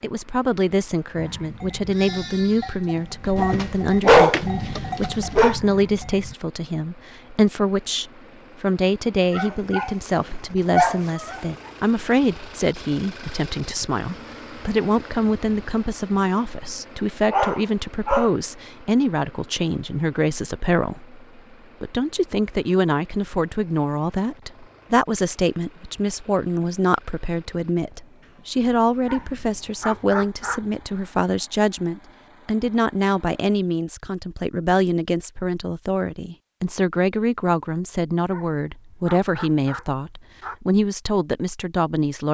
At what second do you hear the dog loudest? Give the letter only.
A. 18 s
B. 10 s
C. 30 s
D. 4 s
D.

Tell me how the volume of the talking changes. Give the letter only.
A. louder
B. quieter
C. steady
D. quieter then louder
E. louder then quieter
C.